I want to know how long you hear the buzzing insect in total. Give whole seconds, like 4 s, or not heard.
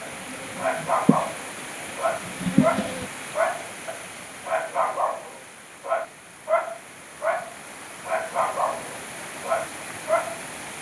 3 s.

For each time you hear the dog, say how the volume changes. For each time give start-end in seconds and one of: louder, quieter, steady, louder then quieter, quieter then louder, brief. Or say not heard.
0.0-10.4 steady.